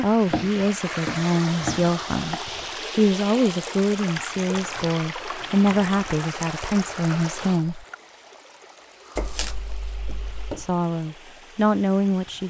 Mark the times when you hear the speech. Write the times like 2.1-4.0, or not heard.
0.0-7.8, 10.6-12.4.